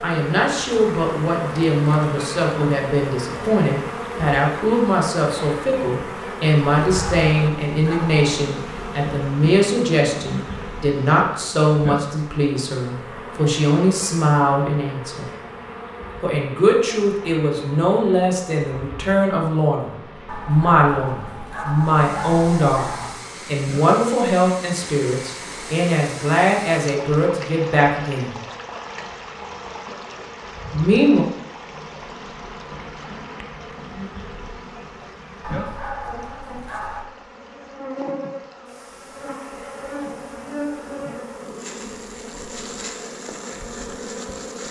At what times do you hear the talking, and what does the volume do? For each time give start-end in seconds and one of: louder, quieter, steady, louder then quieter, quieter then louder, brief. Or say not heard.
0.0-15.2 steady
16.2-28.4 steady
30.7-31.2 brief.